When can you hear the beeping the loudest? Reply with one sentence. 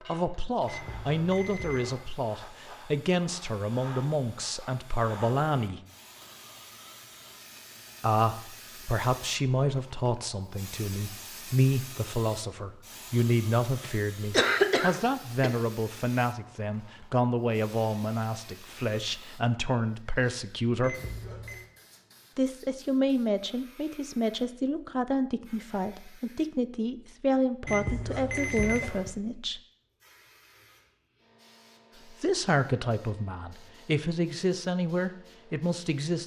The loudest moment of the beeping is at 29 seconds.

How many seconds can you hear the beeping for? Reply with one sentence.
You can hear the beeping for 4 seconds altogether.